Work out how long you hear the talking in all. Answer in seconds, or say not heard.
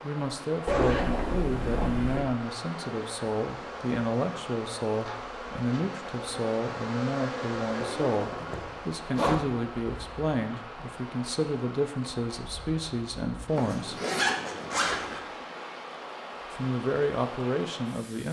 16 s.